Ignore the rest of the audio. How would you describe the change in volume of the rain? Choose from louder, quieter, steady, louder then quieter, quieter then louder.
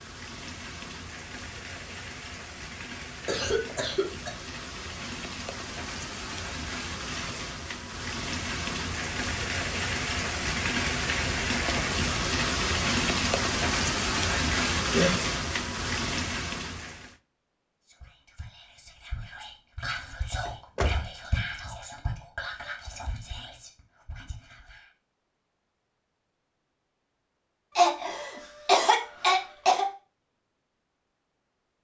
louder.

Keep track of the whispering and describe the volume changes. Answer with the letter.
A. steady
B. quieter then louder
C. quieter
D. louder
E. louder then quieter
E.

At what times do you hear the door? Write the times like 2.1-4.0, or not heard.
20.4-21.1.